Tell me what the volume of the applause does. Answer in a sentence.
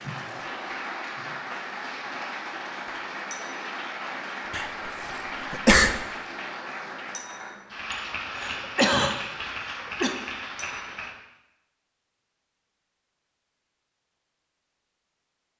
The volume of the applause stays about the same.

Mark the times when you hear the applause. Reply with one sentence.
The applause can be heard from 0.0 to 11.2 s.